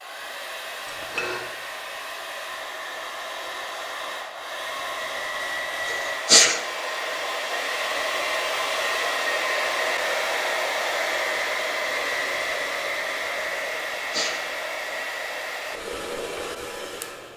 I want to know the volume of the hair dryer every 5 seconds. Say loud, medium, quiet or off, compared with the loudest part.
medium, loud, loud, medium.